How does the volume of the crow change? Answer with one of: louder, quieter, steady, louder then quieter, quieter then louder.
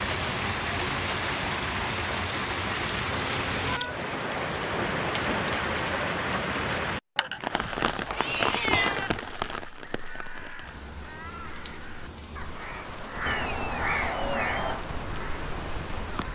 louder then quieter.